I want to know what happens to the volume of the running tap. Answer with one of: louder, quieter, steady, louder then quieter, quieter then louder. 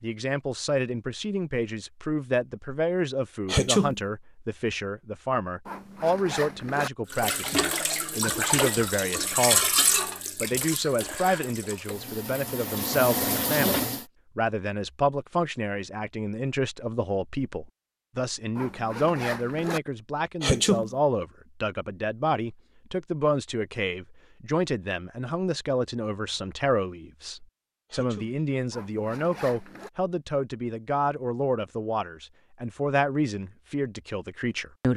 quieter then louder.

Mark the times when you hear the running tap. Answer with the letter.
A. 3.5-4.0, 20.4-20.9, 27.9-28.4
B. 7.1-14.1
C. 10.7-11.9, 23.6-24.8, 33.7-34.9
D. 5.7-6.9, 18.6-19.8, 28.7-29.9
B.